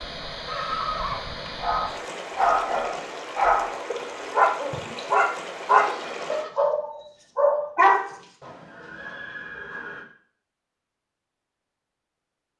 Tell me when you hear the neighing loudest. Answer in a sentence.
The loudest moment of the neighing is at 1 second.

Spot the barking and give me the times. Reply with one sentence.
The barking can be heard from 1.6 to 8.1 s.